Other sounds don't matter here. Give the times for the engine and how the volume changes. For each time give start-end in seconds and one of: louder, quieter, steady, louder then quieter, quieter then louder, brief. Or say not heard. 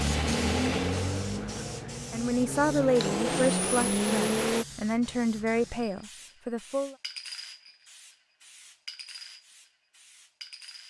0.0-4.7 quieter then louder.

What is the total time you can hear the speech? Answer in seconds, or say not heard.
5 s.